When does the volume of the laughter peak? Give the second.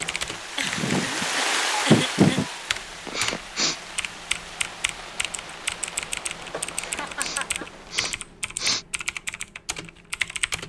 2 s.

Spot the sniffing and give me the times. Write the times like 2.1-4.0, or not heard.
3.0-3.8, 6.7-8.8.